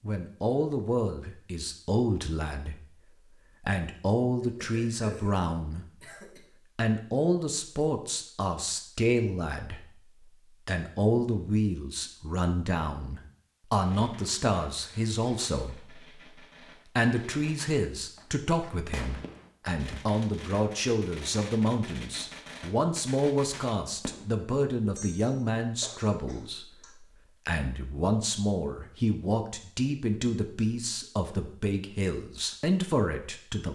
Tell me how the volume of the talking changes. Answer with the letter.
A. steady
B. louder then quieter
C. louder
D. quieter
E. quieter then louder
A.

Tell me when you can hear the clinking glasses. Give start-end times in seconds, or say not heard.
not heard.